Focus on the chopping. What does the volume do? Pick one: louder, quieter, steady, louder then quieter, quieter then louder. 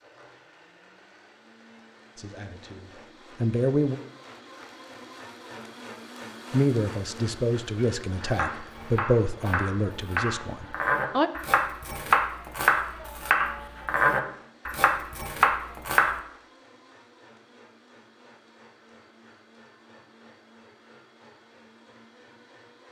louder.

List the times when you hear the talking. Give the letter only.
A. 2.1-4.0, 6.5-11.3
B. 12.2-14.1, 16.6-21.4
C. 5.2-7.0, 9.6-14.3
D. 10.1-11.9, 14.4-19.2
A.